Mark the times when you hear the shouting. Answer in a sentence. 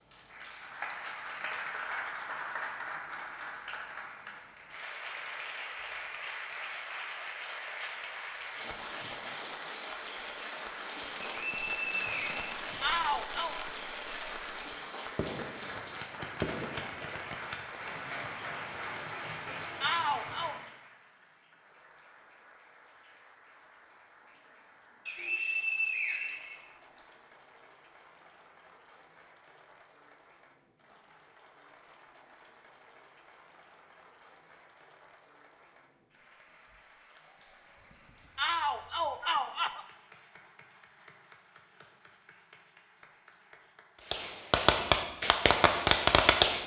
You can hear the shouting from 12.8 to 13.6 s, from 19.8 to 20.6 s and from 38.4 to 39.9 s.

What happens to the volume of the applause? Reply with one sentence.
The volume of the applause goes down.